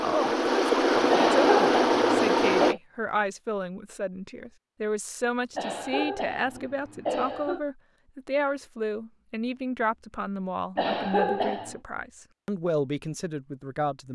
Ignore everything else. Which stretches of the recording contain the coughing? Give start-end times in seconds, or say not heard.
1.1-2.8, 5.5-7.6, 10.8-11.8.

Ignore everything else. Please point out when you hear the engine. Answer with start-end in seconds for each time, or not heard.
0.0-2.8.